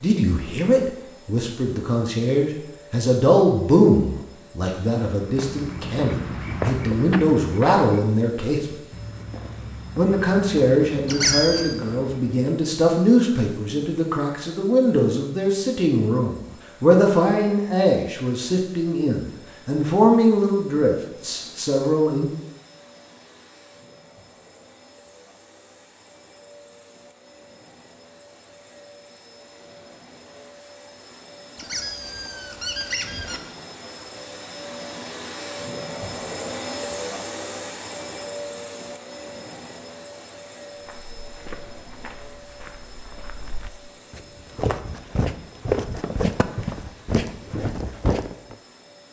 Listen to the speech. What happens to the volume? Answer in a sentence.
The loudness of the speech stays about the same.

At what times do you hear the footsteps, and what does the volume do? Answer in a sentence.
You can hear the footsteps from 5.1 to 12.5 s, getting quieter; and from 40.8 to 48.5 s, getting louder.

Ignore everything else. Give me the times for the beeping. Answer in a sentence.
The beeping can't be heard in this clip.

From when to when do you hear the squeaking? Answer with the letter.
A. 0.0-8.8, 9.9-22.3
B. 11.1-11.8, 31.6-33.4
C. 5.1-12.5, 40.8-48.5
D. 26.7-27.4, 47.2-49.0
B.